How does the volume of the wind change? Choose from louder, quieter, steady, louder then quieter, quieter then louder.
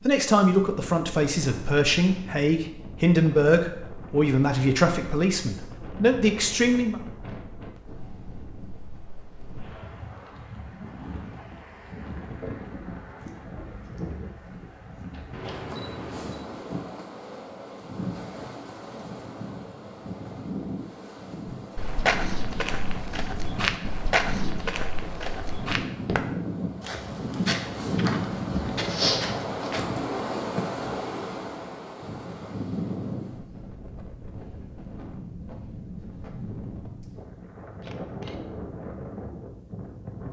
louder then quieter.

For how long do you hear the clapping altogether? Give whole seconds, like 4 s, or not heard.
not heard.